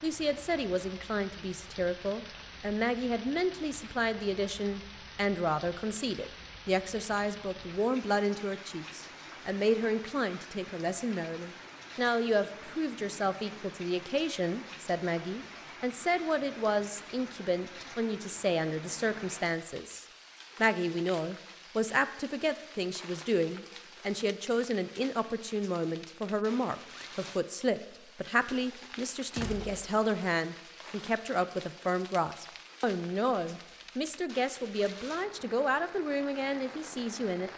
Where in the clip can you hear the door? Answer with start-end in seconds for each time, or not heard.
28.8-29.9.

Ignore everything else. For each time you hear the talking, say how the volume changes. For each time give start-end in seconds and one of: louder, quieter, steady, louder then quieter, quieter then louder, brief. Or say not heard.
0.0-37.5 steady.